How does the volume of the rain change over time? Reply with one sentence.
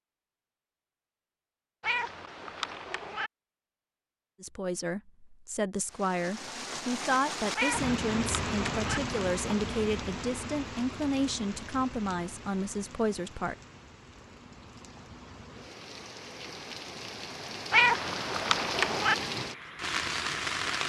The loudness of the rain goes down, then up.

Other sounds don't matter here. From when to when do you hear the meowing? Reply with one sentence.
The meowing can be heard from 1.8 to 3.3 s, from 7.5 to 9.0 s and from 17.7 to 19.1 s.